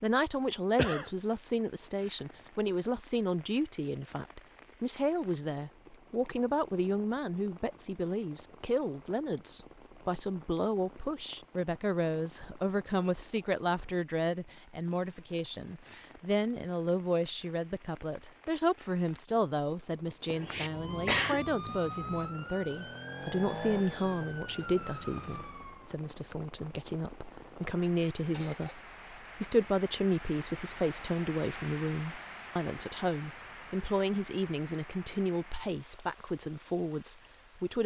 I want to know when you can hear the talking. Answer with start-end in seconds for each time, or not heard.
0.0-37.8.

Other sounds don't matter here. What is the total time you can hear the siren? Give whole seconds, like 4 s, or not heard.
5 s.